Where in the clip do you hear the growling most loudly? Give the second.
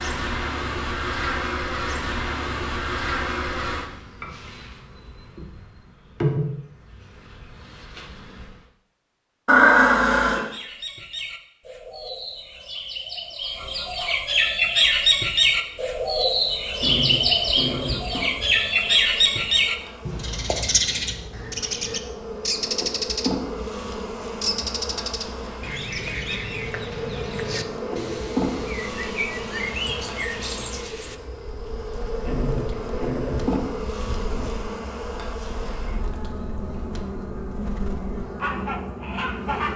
10 s.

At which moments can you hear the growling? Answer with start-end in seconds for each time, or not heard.
9.4-10.4, 16.8-18.7, 32.2-34.6.